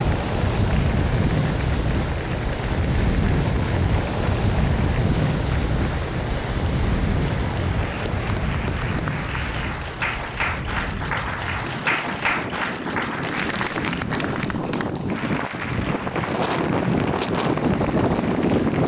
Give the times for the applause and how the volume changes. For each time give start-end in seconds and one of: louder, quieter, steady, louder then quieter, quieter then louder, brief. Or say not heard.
0.0-18.8 louder then quieter.